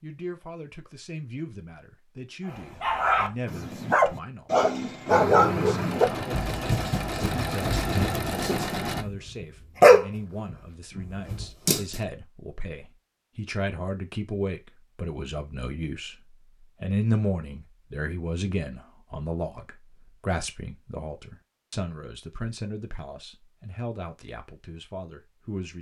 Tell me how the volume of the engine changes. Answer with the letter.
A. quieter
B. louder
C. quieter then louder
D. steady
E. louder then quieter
D.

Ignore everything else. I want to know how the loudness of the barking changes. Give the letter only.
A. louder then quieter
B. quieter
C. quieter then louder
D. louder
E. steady
C.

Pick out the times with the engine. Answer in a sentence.
You can hear the engine from 5.0 to 9.1 s.